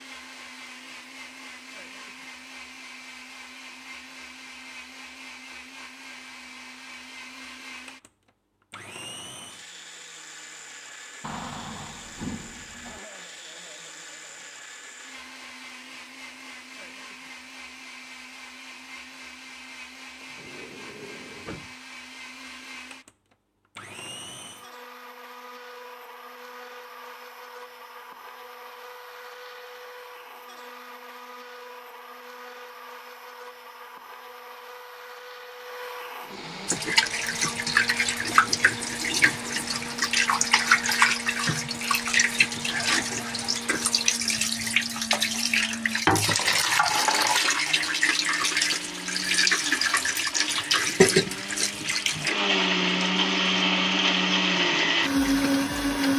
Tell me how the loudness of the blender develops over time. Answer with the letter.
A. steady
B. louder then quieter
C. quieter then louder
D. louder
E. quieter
D.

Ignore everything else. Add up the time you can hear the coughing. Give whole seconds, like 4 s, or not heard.
2 s.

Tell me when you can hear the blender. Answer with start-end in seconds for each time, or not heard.
0.0-56.1.